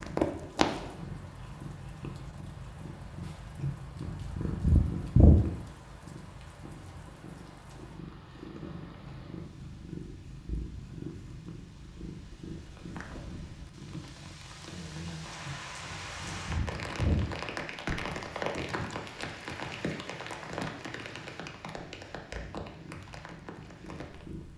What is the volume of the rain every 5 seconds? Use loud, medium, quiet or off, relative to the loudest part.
quiet, quiet, quiet, loud, medium.